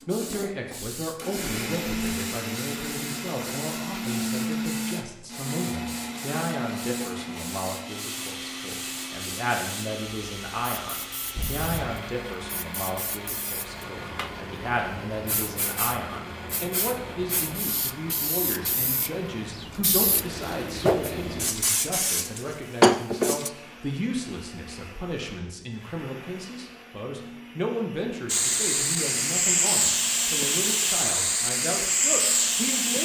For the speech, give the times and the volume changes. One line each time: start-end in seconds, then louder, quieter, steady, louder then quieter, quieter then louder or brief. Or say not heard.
0.1-33.0 steady.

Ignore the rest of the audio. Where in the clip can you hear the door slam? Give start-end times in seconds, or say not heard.
not heard.